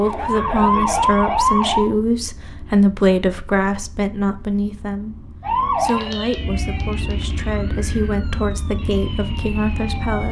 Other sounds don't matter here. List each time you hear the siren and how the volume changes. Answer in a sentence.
You can hear the siren briefly from 0.0 to 1.9 s; and from 5.4 to 10.2 s, getting quieter then louder.